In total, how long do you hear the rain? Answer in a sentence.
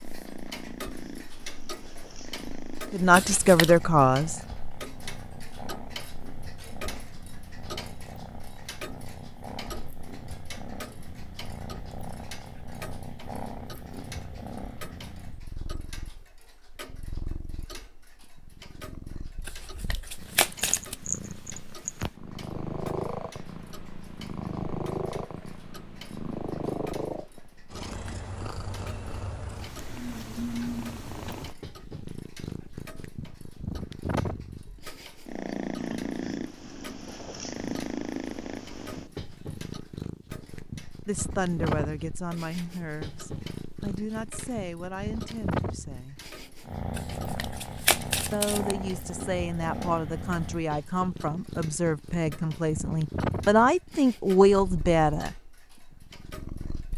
You can't hear the rain here.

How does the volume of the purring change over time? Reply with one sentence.
The volume of the purring goes up.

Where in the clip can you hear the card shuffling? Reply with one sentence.
The card shuffling can be heard from 3.1 to 3.8 s, from 19.4 to 20.9 s and from 47.0 to 48.8 s.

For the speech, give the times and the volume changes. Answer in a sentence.
You can hear the speech briefly from 2.9 to 4.4 s; from 41.0 to 46.2 s, getting quieter; and from 48.3 to 55.4 s, getting louder.